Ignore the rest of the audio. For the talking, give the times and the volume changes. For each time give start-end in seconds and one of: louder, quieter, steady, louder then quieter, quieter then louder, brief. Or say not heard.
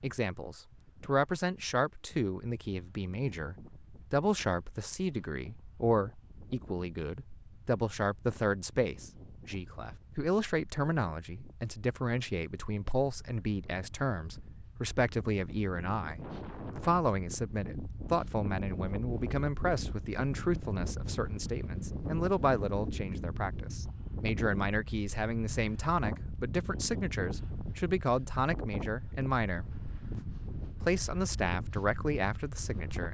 0.0-33.0 steady.